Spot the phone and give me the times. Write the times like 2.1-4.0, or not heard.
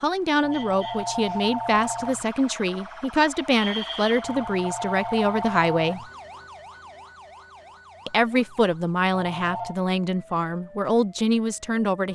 0.4-2.2, 4.2-6.0, 9.1-9.8.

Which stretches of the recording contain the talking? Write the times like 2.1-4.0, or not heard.
0.0-6.0, 8.1-12.0.